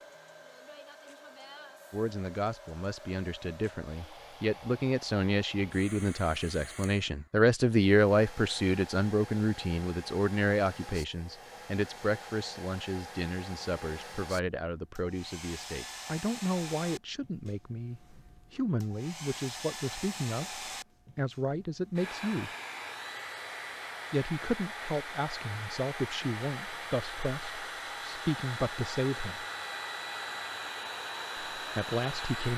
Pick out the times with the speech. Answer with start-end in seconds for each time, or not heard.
1.9-22.5, 24.1-29.4, 31.6-32.5.